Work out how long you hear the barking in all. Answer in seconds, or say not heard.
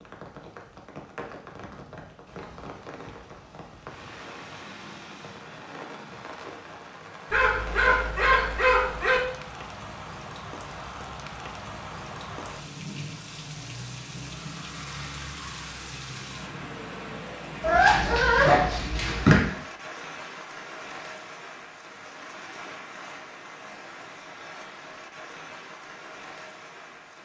4 s.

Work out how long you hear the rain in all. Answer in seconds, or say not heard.
27 s.